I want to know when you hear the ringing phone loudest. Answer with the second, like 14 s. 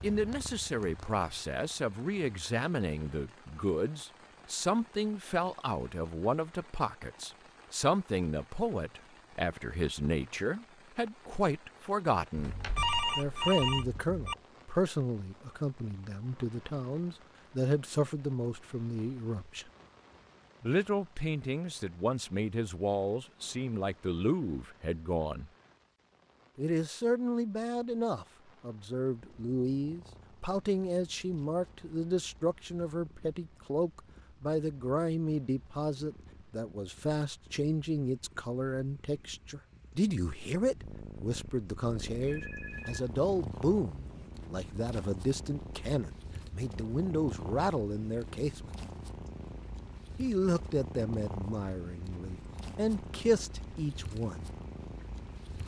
13 s.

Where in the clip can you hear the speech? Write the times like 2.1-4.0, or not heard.
0.0-12.6, 13.2-19.7, 20.6-25.5, 26.6-48.7, 50.1-54.5.